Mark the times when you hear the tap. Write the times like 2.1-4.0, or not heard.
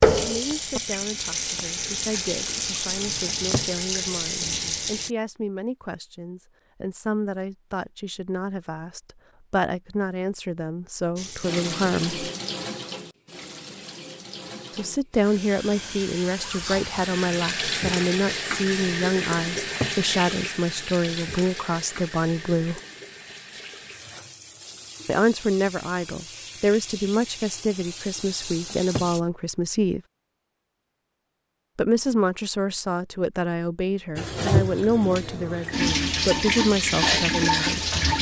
0.0-5.2, 11.2-29.2, 34.1-38.1.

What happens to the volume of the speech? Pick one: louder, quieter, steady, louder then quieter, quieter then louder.
louder.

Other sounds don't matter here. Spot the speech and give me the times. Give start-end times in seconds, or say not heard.
0.1-12.2, 14.8-22.8, 25.1-30.0, 31.8-38.0.